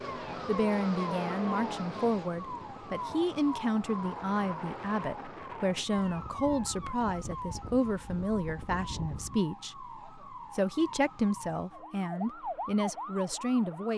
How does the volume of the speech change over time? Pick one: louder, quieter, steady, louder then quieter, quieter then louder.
steady.